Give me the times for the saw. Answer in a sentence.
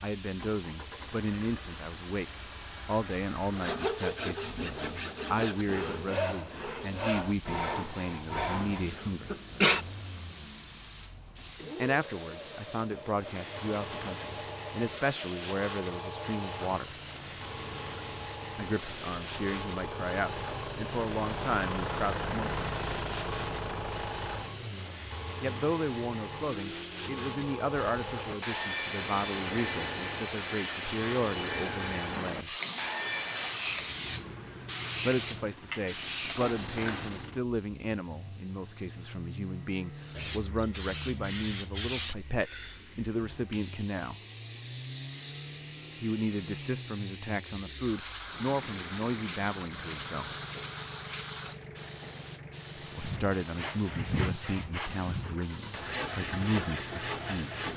You can hear the saw from 3.5 to 8.8 s, from 28.2 to 33.5 s and from 53.0 to 57.7 s.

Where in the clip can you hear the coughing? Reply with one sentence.
The coughing can be heard from 8.8 to 9.8 s and from 36.4 to 37.2 s.